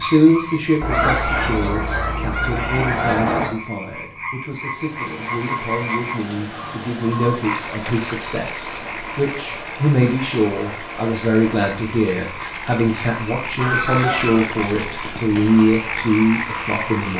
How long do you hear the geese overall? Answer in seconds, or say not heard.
5 s.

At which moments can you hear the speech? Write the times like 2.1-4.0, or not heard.
0.0-17.1.